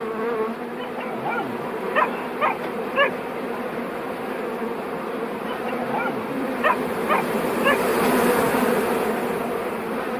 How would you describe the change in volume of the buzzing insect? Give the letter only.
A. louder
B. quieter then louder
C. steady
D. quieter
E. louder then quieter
A.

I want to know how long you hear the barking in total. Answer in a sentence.
The barking can be heard for 5 seconds in total.